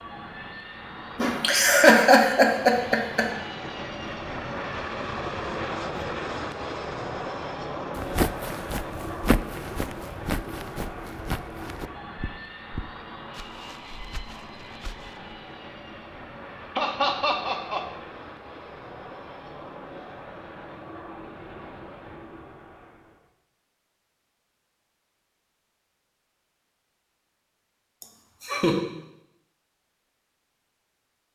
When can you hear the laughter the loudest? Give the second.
2 s.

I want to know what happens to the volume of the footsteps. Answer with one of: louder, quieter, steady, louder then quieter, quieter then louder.
quieter.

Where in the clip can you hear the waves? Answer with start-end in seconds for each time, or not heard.
not heard.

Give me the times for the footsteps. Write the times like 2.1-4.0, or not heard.
8.0-15.3.